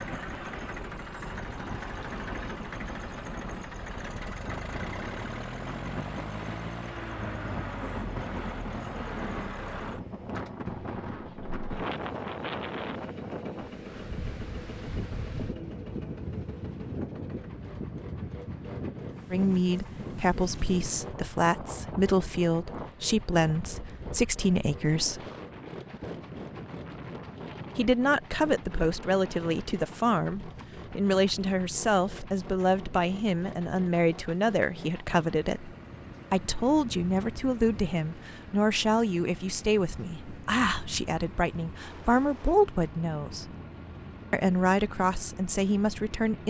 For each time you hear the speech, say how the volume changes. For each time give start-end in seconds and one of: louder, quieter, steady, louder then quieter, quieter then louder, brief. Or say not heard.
19.3-25.2 steady
27.8-43.5 steady
44.3-46.4 brief.